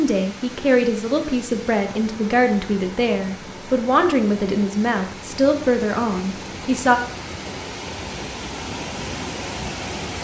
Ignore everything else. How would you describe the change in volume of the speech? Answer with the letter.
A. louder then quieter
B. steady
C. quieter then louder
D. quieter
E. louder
B.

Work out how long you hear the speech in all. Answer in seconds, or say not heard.
7 s.